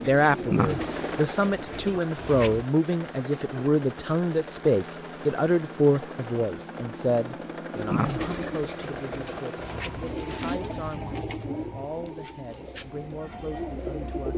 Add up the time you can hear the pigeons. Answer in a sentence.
You can hear the pigeons for 9 seconds altogether.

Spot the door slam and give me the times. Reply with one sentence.
The door slam can't be heard in this clip.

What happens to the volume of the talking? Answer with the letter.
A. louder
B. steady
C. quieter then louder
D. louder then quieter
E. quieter
E.